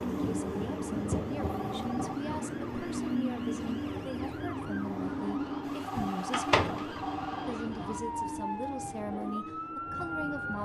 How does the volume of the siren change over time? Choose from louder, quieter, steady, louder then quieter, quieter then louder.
louder.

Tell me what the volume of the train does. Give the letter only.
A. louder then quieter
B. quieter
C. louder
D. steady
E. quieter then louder
B.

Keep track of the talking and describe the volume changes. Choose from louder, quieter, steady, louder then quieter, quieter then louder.
steady.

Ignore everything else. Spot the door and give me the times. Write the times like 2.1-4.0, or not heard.
6.0-7.0.